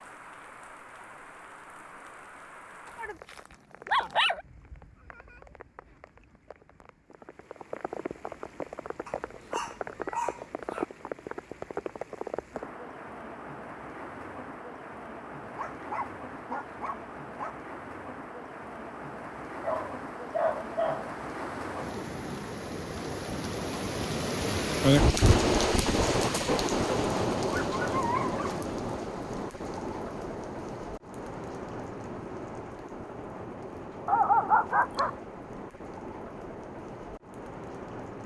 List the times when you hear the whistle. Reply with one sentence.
You can't hear the whistle here.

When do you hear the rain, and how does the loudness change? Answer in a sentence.
The rain can be heard from 0.0 to 38.2 s, getting louder then quieter.